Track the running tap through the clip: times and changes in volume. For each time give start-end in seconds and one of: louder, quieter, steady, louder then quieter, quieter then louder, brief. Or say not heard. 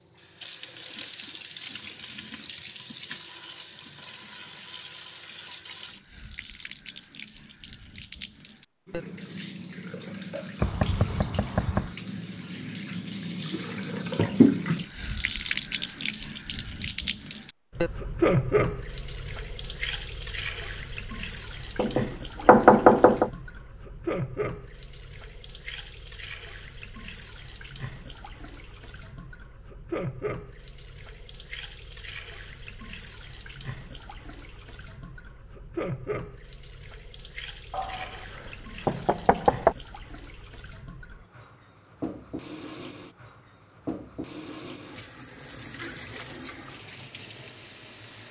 0.1-48.2 louder then quieter.